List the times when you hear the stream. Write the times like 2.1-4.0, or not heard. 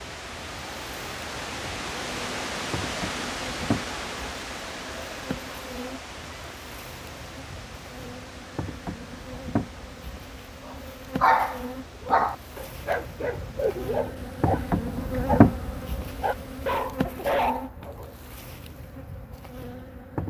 0.0-16.9.